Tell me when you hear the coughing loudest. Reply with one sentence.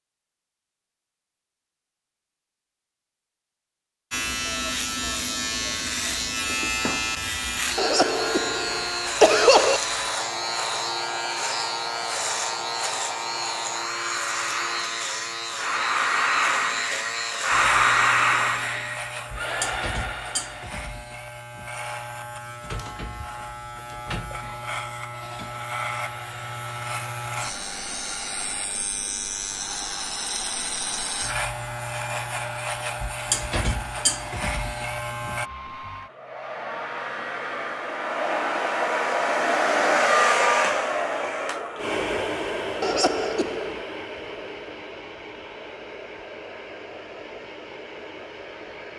The loudest moment of the coughing is at 9 seconds.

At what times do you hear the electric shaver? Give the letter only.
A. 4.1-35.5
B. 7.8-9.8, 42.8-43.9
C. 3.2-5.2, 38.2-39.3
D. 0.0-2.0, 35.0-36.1
A.